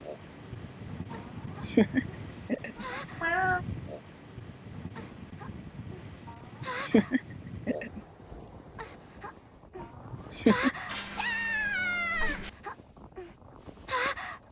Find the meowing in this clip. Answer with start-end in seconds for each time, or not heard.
2.8-3.6, 10.8-12.5.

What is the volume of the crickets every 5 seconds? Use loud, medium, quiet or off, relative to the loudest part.
medium, medium, loud.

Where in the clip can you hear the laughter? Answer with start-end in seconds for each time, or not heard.
1.1-3.0, 6.2-8.0, 9.8-10.8.